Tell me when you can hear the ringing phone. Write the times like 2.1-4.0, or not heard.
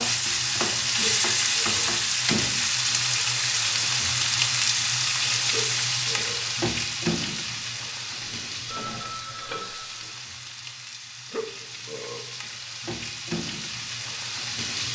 8.2-10.1.